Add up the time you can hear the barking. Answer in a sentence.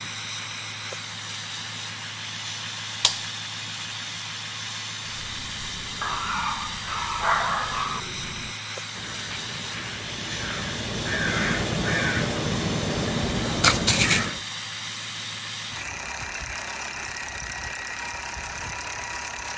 The barking can be heard for 2 seconds in total.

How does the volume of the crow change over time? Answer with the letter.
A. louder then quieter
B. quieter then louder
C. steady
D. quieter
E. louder
E.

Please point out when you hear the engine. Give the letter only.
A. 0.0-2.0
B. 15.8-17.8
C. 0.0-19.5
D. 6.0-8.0
C.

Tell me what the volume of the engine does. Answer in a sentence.
The loudness of the engine stays about the same.